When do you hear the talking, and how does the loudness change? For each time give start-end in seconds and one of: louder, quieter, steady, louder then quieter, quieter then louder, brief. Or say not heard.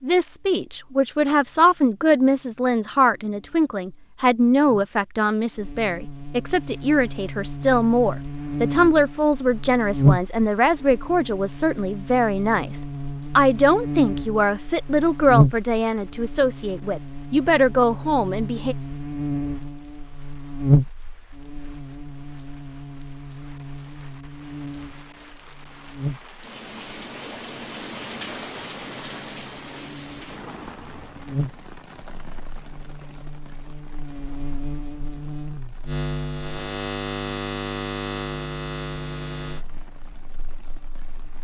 0.0-18.8 steady.